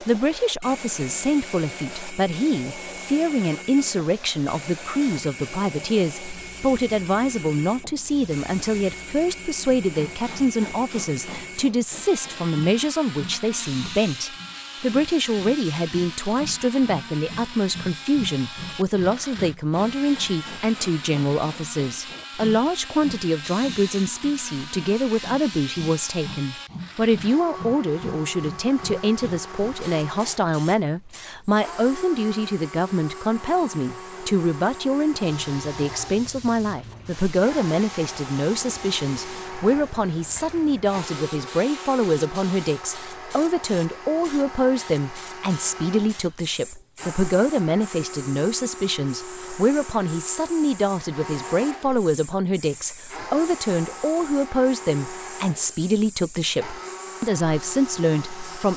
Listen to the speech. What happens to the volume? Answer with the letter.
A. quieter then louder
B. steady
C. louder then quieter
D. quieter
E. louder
B.